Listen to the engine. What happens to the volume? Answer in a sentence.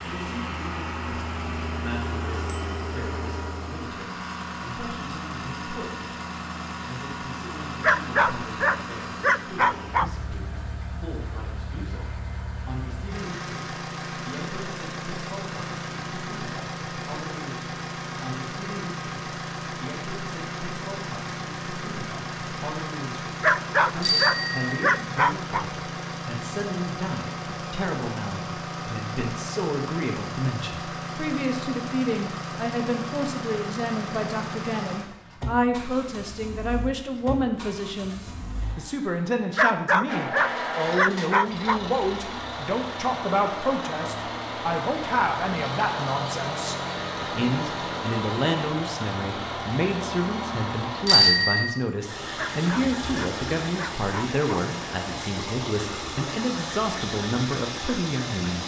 The loudness of the engine stays about the same.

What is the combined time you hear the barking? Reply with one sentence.
You can hear the barking for 9 seconds altogether.